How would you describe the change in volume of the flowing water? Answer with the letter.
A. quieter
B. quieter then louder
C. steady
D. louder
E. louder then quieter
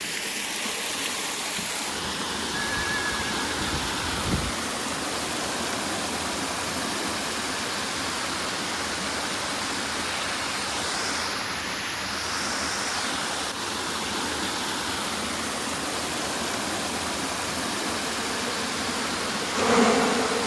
C.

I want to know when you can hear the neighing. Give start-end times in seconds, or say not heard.
2.5-4.5.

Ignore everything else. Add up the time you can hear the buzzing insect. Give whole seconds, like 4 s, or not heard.
2 s.